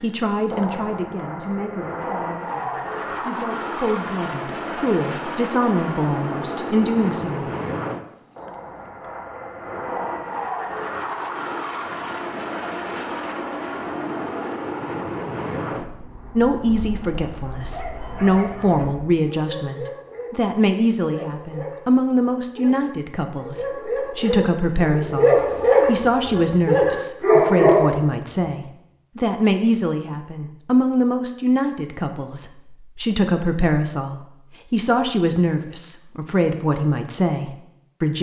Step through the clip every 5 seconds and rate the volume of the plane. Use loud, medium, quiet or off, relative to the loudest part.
loud, loud, loud, medium, off, off, off, off.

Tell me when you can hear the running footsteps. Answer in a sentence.
You can't hear the running footsteps here.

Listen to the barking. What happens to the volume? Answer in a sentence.
The volume of the barking goes up.